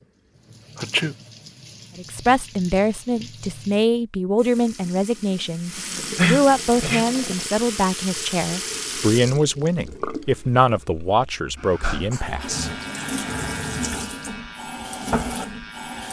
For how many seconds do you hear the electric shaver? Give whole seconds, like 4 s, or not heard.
4 s.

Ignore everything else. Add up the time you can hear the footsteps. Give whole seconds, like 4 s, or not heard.
not heard.